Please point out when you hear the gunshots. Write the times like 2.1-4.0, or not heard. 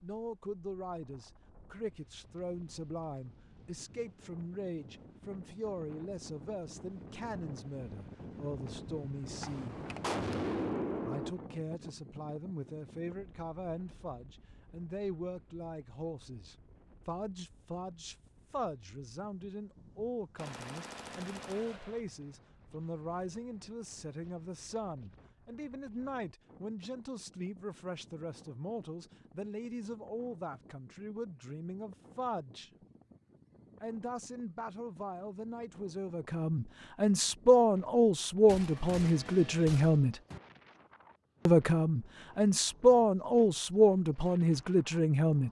9.4-11.3, 20.4-22.0, 38.5-40.4.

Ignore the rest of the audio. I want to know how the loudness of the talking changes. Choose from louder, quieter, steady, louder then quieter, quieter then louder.
louder.